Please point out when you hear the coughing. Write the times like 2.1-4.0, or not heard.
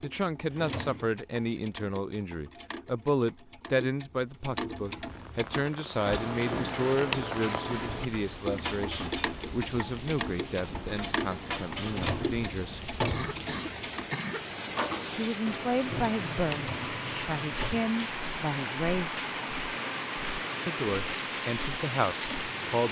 13.1-14.4.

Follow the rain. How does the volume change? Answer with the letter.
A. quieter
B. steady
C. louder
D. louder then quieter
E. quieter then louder
C.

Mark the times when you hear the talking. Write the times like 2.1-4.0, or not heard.
0.0-12.8, 15.2-19.3, 20.6-22.8.